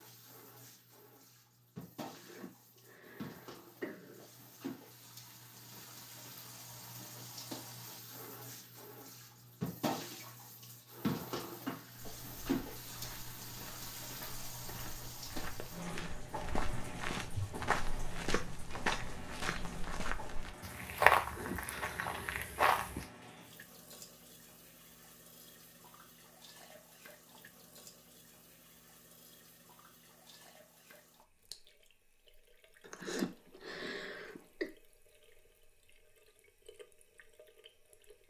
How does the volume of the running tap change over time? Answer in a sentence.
The volume of the running tap goes up, then down.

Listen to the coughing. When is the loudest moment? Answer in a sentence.
The volume of the coughing peaks at 33 seconds.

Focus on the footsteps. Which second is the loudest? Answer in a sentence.
The volume of the footsteps peaks at 21 seconds.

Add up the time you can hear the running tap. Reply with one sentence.
You can hear the running tap for 38 seconds altogether.